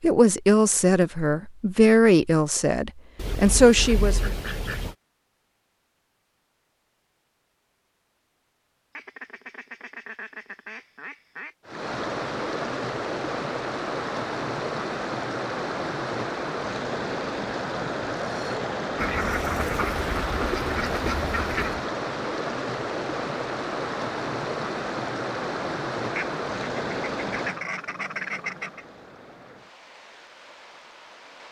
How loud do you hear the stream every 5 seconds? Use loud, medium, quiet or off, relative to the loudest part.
off, off, loud, loud, loud, loud, quiet.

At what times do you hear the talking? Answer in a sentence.
You can hear the talking from 0.0 to 4.2 s.